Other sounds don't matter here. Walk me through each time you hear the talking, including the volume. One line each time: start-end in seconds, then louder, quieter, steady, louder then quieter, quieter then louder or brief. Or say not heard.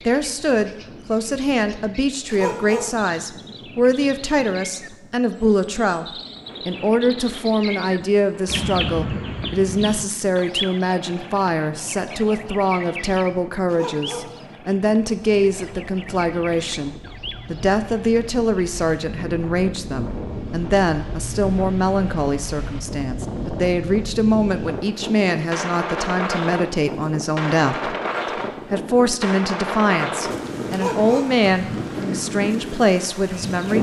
0.1-33.7 steady.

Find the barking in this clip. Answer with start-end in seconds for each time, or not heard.
2.3-3.0, 13.7-14.4, 30.7-31.4.